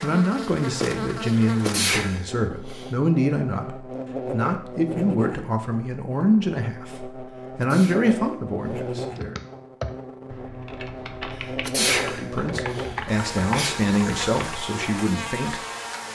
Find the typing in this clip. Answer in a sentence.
You can hear the typing from 9.1 to 14.6 s.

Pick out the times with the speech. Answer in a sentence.
The speech can be heard from 0.0 to 9.3 s and from 12.1 to 15.6 s.